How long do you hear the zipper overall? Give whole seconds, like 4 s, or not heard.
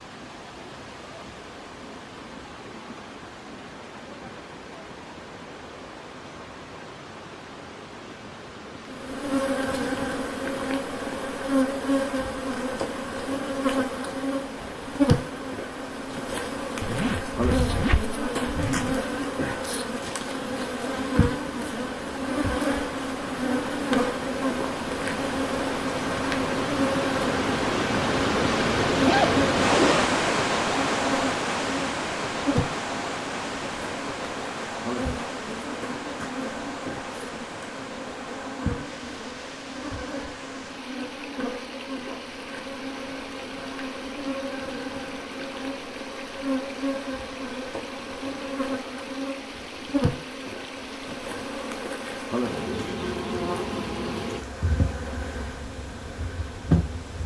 3 s.